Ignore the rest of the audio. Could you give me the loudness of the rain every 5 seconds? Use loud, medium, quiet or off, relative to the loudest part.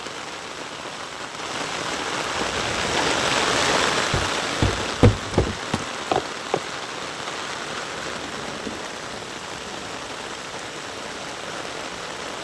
loud, medium, medium.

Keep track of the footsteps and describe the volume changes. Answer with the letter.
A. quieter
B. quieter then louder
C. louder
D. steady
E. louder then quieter
C.